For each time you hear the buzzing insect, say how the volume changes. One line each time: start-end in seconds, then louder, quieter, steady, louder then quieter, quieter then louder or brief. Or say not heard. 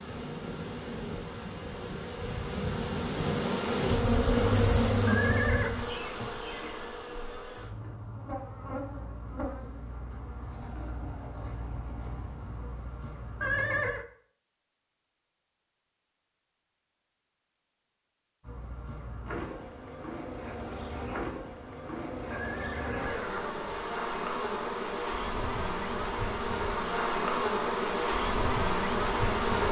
0.0-13.9 louder then quieter
18.4-29.6 louder.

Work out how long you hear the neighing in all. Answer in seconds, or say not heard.
3 s.